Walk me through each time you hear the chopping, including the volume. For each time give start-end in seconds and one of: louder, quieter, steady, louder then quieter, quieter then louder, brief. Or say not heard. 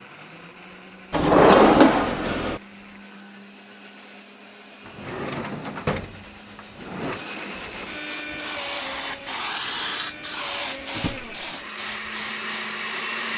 not heard.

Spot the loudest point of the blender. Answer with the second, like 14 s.
13 s.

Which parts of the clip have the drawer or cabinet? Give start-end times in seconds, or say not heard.
1.1-2.6, 4.8-7.2, 10.9-11.3.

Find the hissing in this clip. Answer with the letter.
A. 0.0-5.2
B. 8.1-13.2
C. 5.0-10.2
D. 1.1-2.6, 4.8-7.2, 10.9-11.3
B.